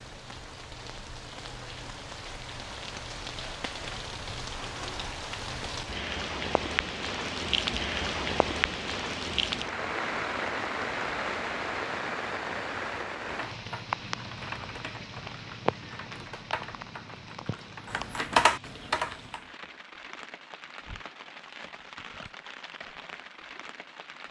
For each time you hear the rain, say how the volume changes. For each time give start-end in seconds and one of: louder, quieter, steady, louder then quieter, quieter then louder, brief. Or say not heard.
0.0-24.2 louder then quieter.